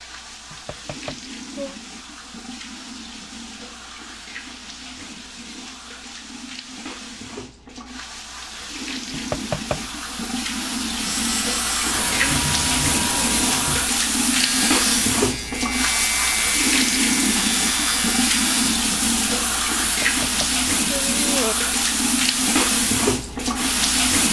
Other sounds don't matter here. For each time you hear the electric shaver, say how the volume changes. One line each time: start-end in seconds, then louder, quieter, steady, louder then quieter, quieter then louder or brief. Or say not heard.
10.9-18.9 steady.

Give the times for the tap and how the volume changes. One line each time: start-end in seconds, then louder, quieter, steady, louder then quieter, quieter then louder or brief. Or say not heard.
0.0-24.2 louder.